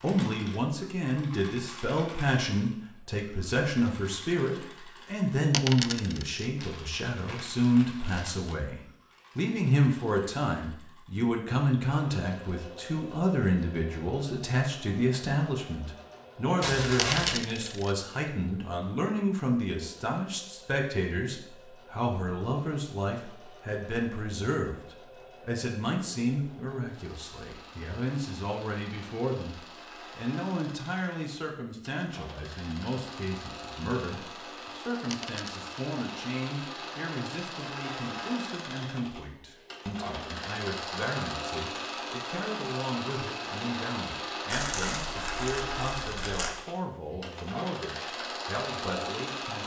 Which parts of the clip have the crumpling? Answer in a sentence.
The crumpling can be heard from 6.5 to 8.6 s, from 16.6 to 17.4 s and from 44.5 to 46.5 s.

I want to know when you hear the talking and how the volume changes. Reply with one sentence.
You can hear the talking from 0.0 to 49.6 s, getting quieter.